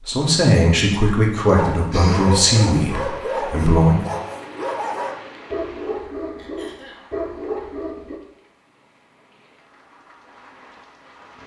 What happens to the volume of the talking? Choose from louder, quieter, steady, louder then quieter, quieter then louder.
quieter.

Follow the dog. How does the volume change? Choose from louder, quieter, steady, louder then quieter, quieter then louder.
steady.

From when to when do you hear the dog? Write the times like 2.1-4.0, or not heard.
1.5-8.2.